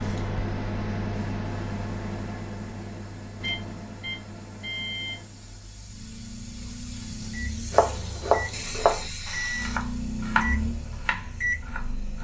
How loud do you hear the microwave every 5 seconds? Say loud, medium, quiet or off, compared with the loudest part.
loud, medium, loud.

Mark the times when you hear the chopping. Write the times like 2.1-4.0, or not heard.
7.7-12.1.